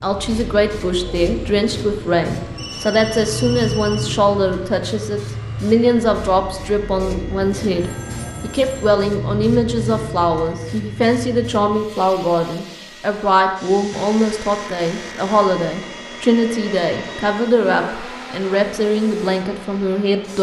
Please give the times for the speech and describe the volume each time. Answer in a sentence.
You can hear the speech from 0.0 to 20.3 s, at a steady volume.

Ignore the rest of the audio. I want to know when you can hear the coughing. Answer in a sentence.
You can't hear the coughing here.